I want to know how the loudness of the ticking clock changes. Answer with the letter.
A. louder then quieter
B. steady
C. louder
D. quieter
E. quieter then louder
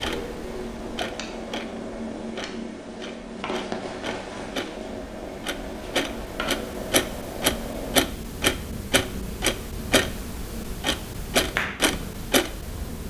C.